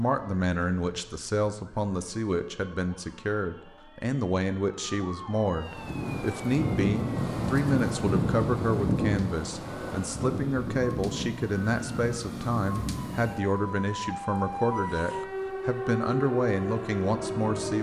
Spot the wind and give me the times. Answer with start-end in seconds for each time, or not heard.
5.6-17.7.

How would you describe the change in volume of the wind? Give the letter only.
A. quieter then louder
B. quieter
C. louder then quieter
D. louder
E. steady
B.